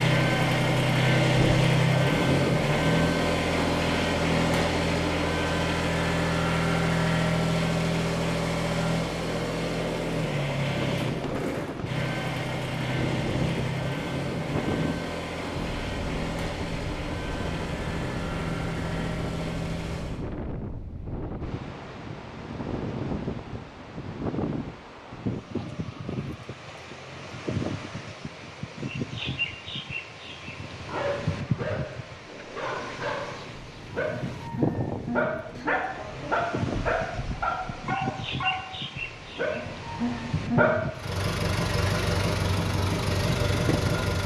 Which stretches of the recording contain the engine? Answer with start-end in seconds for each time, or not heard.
0.0-20.2, 40.9-44.2.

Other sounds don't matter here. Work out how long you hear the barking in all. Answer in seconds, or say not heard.
10 s.